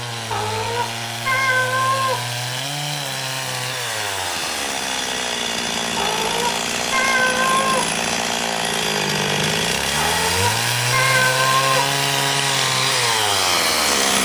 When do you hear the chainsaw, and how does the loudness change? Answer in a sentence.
The chainsaw can be heard from 0.0 to 14.2 s, getting louder.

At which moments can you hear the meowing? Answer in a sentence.
You can hear the meowing from 0.3 to 2.2 s, from 6.0 to 7.8 s and from 9.9 to 11.8 s.